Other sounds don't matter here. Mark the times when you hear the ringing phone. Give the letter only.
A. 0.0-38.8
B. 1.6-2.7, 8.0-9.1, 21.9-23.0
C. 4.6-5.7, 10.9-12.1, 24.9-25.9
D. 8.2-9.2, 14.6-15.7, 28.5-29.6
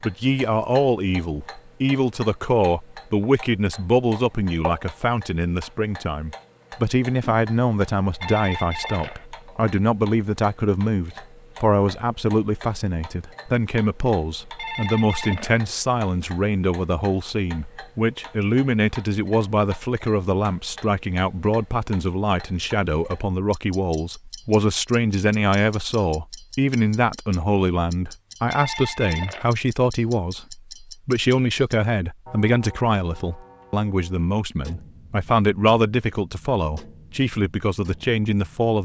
D.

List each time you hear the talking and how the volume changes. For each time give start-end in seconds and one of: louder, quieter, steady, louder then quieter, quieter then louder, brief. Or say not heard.
0.0-38.8 steady.